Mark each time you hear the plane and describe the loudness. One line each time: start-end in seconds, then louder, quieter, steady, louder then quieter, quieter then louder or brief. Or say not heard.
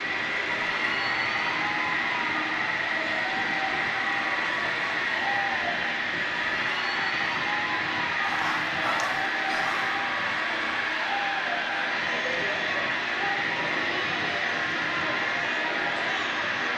0.0-16.7 steady.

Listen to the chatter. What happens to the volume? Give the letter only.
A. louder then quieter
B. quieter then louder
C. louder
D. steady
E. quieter
D.